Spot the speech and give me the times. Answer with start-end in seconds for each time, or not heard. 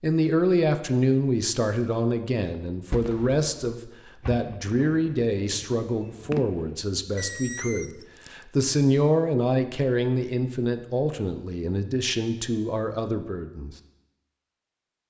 0.0-13.8.